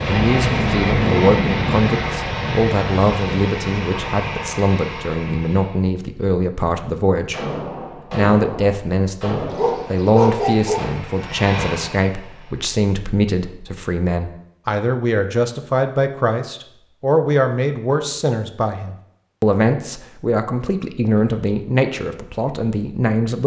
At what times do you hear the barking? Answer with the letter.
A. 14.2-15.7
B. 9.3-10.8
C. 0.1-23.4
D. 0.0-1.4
B.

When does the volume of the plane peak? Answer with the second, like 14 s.
1 s.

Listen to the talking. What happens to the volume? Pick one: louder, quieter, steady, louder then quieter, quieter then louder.
steady.